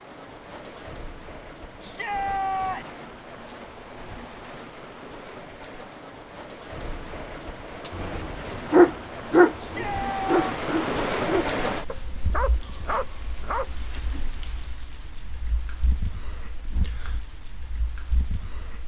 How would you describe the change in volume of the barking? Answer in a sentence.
The volume of the barking goes down.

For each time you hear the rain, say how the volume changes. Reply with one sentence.
The rain can be heard from 0.0 to 18.8 s, getting louder then quieter.